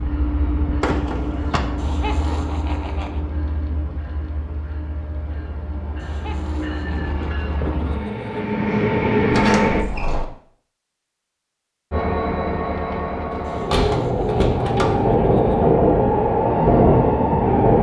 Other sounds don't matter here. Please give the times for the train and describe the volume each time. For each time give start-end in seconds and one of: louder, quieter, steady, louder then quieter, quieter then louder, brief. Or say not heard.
0.0-9.8 quieter then louder
11.9-17.7 louder.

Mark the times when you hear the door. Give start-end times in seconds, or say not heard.
0.8-1.6, 9.3-10.3, 13.3-15.2.